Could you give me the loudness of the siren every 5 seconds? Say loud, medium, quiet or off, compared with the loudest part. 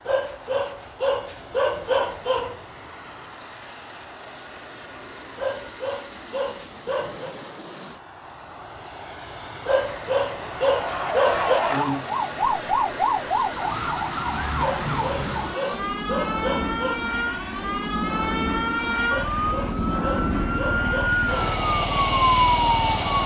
off, off, loud, medium, loud.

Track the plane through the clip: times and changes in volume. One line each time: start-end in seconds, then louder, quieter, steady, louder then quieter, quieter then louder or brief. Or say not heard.
0.0-23.2 louder.